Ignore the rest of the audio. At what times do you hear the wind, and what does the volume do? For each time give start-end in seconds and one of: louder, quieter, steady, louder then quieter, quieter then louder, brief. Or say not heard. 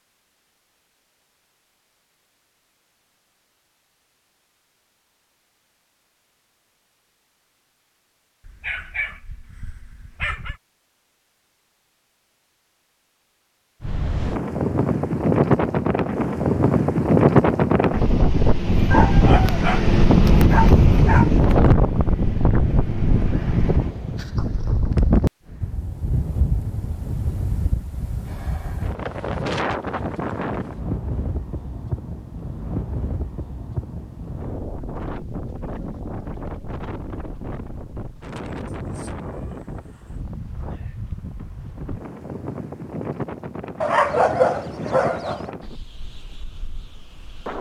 13.8-47.5 quieter.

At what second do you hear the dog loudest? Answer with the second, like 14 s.
44 s.